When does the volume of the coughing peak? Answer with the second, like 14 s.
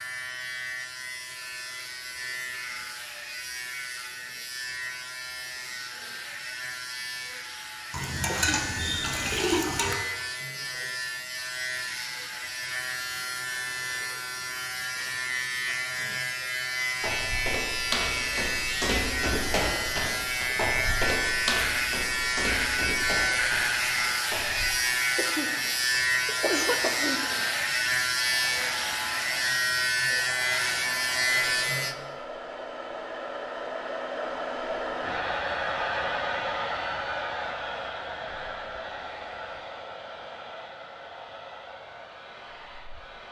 27 s.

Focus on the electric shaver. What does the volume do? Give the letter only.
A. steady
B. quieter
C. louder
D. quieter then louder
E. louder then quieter
C.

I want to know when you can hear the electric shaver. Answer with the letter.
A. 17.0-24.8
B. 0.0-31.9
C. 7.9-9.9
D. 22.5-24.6
B.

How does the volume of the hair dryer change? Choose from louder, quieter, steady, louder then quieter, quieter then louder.
louder then quieter.